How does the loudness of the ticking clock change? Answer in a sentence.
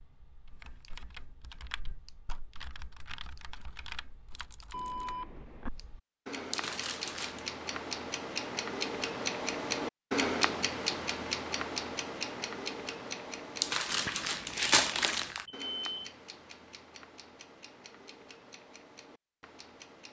The loudness of the ticking clock goes up, then down.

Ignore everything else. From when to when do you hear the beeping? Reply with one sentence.
The beeping can be heard from 4.7 to 5.7 s and from 15.4 to 16.1 s.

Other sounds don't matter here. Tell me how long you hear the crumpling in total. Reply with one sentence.
You can hear the crumpling for 3 seconds altogether.